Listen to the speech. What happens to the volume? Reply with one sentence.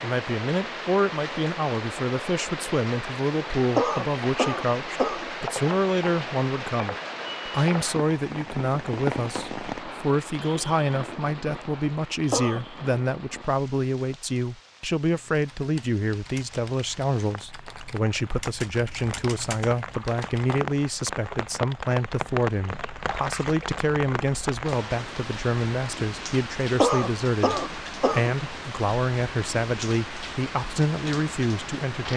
The loudness of the speech stays about the same.